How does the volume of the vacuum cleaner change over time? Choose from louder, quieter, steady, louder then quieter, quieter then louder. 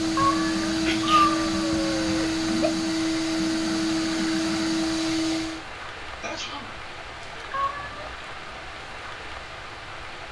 steady.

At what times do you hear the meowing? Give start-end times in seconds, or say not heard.
0.1-2.7, 7.5-8.1.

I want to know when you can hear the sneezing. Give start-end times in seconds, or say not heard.
0.8-1.4, 6.2-6.8.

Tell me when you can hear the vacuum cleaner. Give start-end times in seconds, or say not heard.
0.0-5.7.